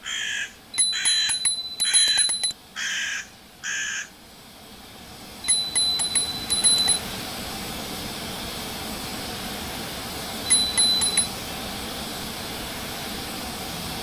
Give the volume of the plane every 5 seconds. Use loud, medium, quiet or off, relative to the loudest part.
quiet, loud, loud.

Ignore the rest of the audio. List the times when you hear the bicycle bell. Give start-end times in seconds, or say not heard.
0.8-2.5, 5.5-7.0, 10.4-11.3.